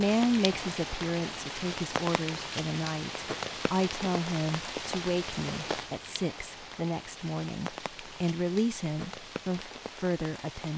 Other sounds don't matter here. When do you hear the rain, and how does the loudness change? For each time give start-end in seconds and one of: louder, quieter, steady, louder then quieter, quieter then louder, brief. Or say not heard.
0.0-10.7 quieter.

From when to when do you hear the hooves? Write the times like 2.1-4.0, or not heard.
not heard.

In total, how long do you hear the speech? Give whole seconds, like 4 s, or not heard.
11 s.